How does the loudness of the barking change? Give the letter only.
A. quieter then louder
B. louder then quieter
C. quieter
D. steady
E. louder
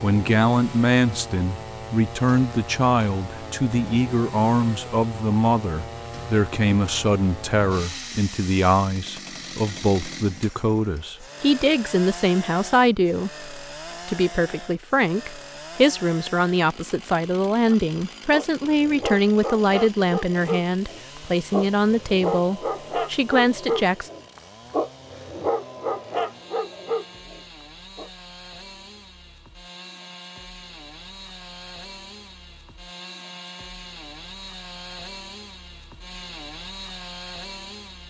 D.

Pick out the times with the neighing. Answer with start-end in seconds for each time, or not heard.
not heard.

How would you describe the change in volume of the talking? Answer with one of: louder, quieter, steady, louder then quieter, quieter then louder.
steady.